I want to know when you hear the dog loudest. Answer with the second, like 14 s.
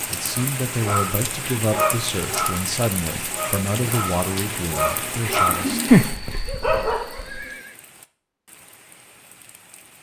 6 s.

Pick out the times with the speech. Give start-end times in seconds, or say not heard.
0.1-5.8.